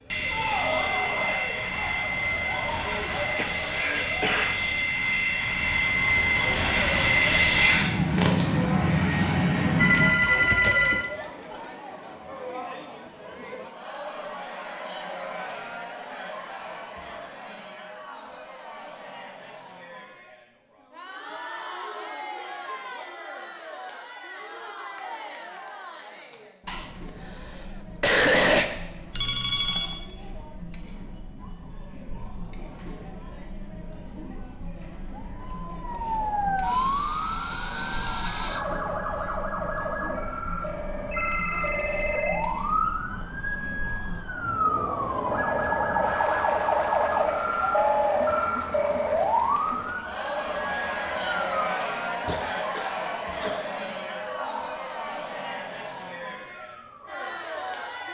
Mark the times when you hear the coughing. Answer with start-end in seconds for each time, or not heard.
3.4-4.7, 26.6-28.7, 52.2-53.8.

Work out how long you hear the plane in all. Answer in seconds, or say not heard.
10 s.